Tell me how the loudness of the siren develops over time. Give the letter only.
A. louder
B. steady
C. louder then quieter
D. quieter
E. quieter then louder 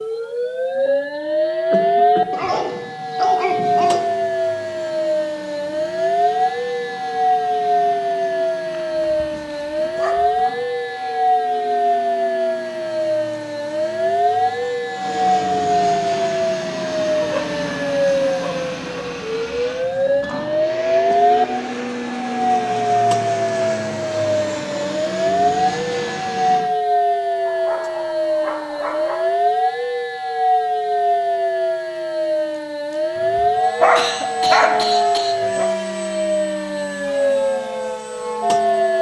B.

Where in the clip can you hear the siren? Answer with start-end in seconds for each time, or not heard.
0.0-38.9.